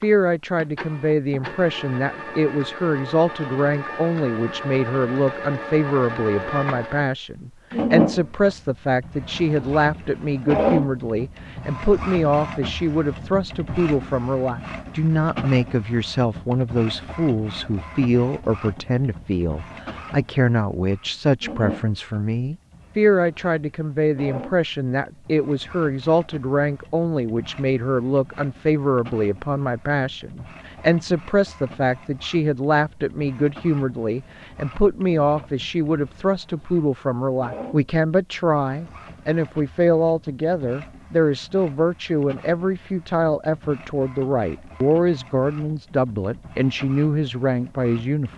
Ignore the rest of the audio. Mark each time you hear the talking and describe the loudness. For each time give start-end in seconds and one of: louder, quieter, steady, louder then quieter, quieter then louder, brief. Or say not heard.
0.0-48.3 steady.